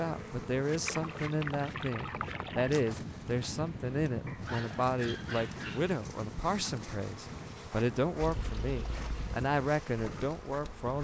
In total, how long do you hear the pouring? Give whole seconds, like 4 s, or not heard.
3 s.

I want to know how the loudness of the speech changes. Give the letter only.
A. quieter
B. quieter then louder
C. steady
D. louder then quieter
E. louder
C.